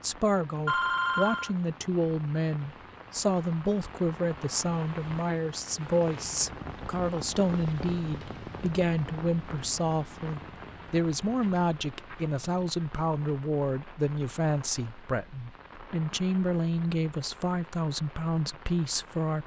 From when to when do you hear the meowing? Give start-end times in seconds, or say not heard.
not heard.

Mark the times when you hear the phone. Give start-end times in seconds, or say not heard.
0.7-1.5.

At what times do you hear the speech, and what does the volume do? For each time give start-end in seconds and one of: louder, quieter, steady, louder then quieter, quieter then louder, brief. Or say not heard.
0.0-19.4 steady.